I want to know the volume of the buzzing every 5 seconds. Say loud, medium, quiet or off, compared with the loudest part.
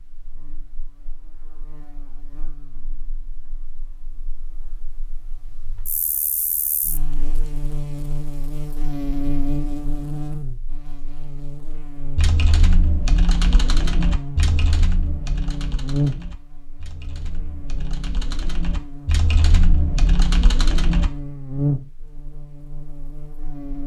quiet, loud, medium, loud, loud.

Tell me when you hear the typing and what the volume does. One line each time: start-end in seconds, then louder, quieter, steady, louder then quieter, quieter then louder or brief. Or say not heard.
12.2-21.1 quieter then louder.